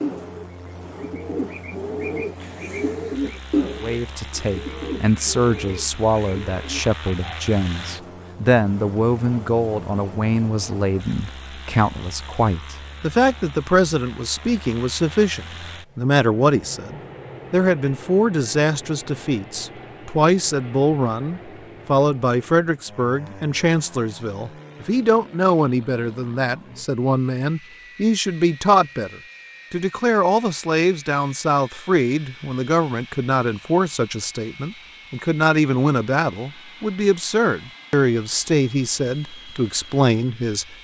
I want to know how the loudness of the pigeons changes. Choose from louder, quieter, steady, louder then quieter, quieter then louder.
louder then quieter.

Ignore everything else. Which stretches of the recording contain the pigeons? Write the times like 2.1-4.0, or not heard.
0.0-7.3.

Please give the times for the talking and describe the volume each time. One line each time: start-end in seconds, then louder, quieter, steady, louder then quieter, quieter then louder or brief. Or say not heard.
3.8-40.7 steady.